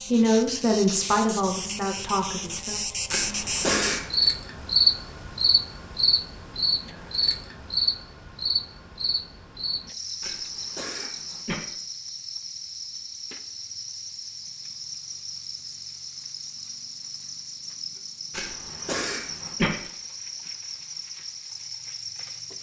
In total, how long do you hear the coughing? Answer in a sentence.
The coughing can be heard for 4 seconds in total.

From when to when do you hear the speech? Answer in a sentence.
The speech can be heard from 0.1 to 2.8 s.